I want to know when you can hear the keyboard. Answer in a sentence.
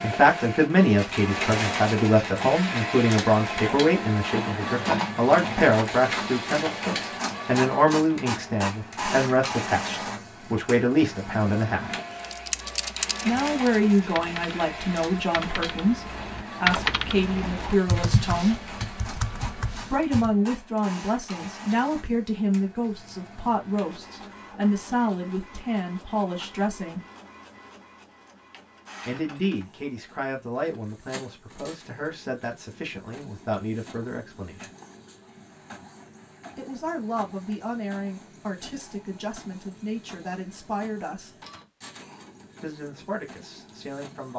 The keyboard can be heard from 12.2 to 20.3 s.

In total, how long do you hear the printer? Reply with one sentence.
The printer can be heard for 44 seconds in total.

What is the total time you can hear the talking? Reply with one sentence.
The talking can be heard for 37 seconds in total.